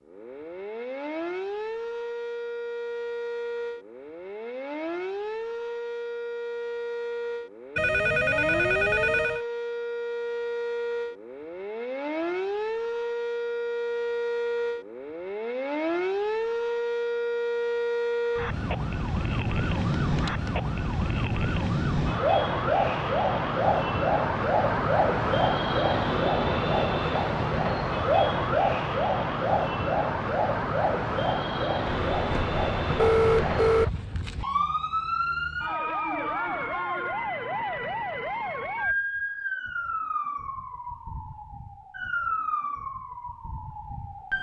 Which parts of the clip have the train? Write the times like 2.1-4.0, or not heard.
not heard.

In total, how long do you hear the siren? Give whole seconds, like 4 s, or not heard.
44 s.